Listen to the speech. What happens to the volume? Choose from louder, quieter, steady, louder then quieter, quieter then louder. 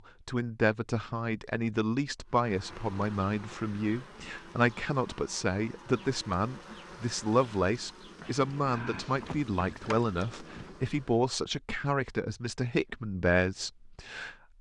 steady.